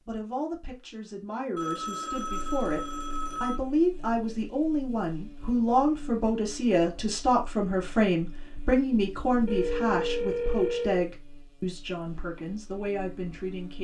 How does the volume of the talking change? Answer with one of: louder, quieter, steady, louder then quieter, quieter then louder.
louder then quieter.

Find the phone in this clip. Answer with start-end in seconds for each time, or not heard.
1.6-3.6, 9.4-11.1.